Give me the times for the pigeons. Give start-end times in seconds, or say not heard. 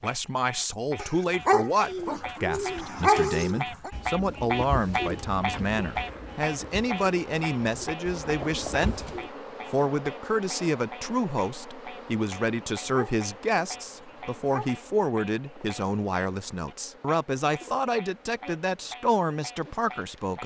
1.8-9.3.